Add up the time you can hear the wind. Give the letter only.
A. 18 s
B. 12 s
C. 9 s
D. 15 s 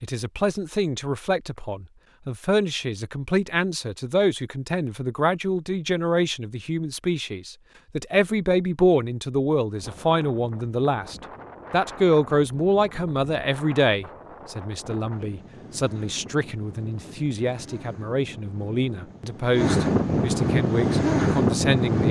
B.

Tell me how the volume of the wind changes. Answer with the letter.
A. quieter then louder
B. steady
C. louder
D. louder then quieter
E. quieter
C.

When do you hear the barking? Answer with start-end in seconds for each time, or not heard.
not heard.